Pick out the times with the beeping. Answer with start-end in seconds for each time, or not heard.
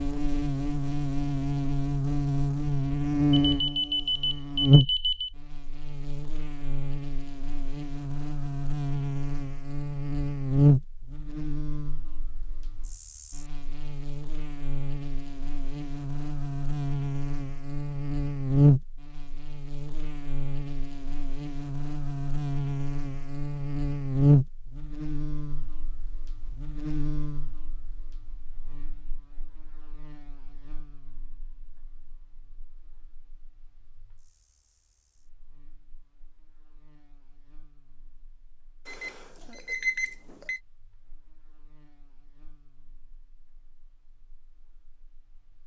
3.3-5.3, 38.9-40.6.